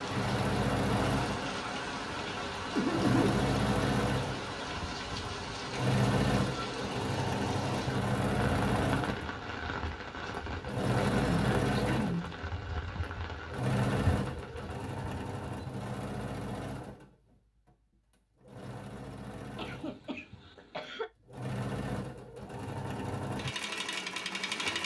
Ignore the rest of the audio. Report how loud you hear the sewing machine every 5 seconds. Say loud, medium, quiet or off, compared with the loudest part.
loud, loud, loud, medium, medium.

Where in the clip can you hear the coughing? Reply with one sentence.
The coughing can be heard from 2.8 to 3.4 s, from 10.9 to 12.3 s and from 19.6 to 21.1 s.